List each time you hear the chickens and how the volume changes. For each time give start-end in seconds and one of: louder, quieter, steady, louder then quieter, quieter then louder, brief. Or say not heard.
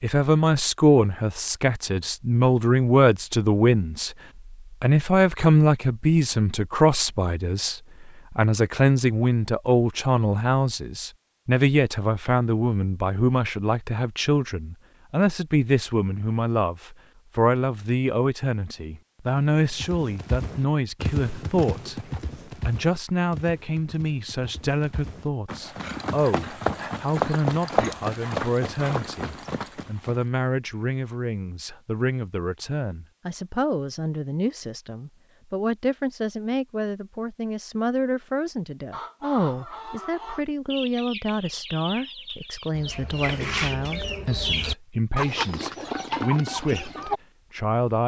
38.9-47.2 louder.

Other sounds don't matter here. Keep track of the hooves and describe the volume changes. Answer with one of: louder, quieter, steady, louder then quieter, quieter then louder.
quieter then louder.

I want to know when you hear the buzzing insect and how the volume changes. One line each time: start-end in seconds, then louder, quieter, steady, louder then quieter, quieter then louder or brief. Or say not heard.
not heard.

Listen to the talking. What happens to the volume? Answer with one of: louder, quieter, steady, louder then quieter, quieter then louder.
quieter.